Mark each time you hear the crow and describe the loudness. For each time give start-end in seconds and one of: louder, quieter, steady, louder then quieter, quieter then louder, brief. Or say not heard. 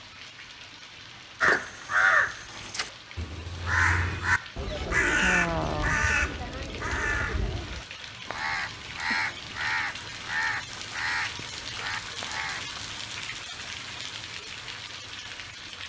1.4-12.9 quieter.